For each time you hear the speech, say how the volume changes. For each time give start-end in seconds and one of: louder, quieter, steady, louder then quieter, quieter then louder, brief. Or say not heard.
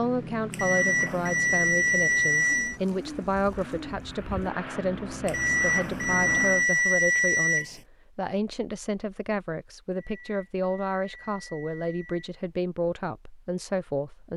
0.0-14.3 steady.